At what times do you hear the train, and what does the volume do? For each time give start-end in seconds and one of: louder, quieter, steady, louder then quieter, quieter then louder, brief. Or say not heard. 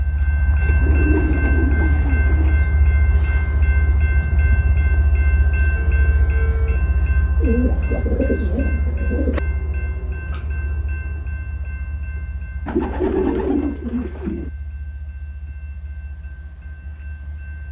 0.0-17.6 quieter.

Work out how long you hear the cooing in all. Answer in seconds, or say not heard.
6 s.